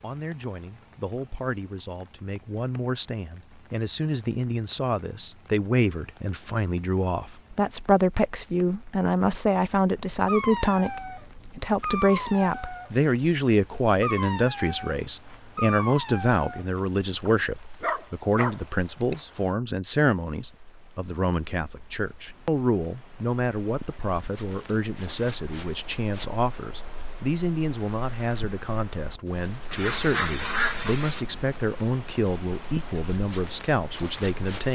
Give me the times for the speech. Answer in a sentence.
The speech can be heard from 0.0 to 34.6 s.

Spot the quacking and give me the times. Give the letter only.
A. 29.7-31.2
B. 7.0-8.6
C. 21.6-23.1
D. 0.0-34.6
A.